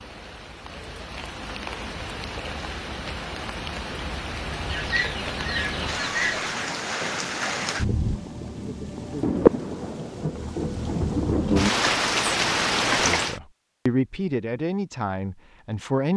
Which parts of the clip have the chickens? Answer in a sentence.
You can hear the chickens from 4.7 to 6.4 s.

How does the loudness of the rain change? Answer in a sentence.
The volume of the rain goes up.